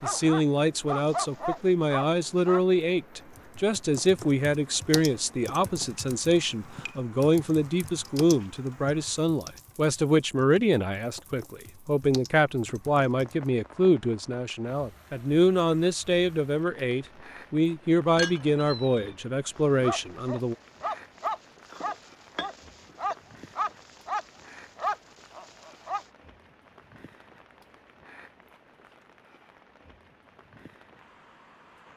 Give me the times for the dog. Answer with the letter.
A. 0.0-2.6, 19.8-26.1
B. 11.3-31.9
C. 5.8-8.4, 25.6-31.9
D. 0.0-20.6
A.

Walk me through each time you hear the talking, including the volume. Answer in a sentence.
The talking can be heard from 0.0 to 20.6 s, at a steady volume.